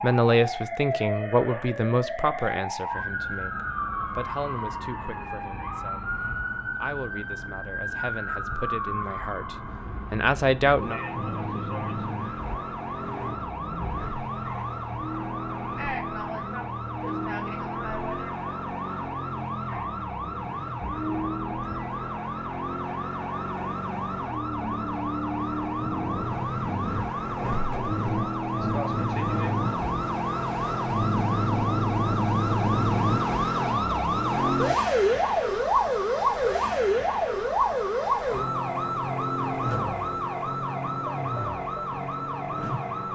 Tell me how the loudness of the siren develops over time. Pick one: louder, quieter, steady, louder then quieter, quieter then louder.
louder.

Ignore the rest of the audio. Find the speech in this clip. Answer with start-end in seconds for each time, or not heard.
0.0-6.0, 6.8-11.0.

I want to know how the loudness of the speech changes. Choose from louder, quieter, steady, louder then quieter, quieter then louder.
quieter then louder.